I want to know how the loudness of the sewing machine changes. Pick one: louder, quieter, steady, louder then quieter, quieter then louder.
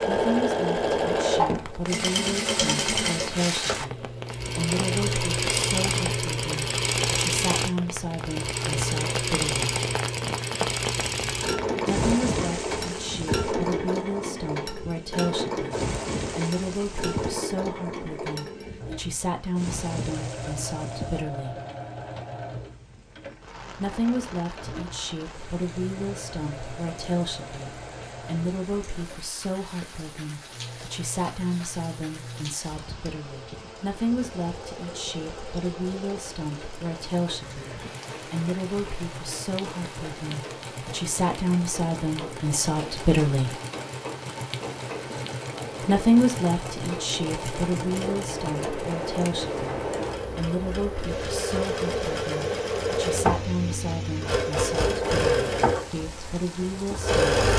quieter then louder.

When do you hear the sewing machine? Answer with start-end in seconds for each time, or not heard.
0.0-57.5.